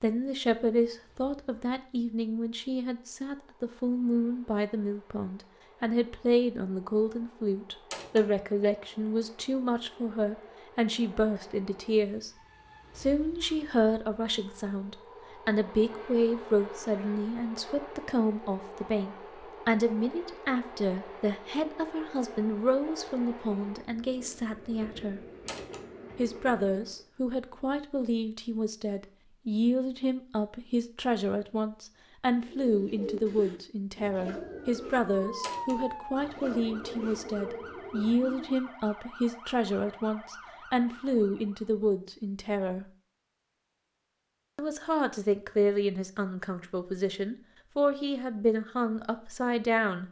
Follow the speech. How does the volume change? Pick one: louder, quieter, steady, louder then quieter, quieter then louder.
steady.